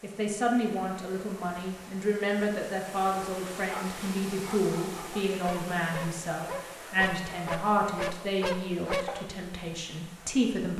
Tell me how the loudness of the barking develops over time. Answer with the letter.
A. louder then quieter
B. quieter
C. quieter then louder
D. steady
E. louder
E.